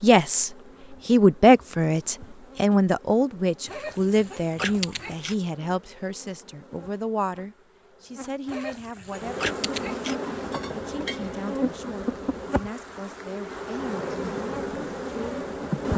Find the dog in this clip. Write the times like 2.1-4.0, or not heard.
3.6-5.3, 8.4-10.2.